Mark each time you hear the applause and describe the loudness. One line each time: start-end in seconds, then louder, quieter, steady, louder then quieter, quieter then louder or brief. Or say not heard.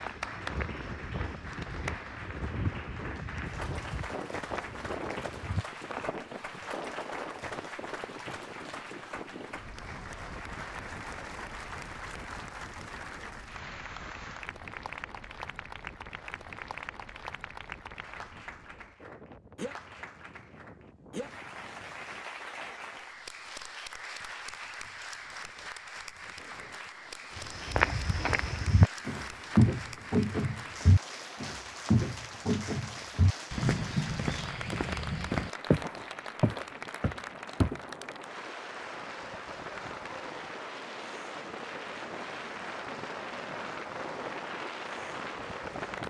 0.0-46.0 steady.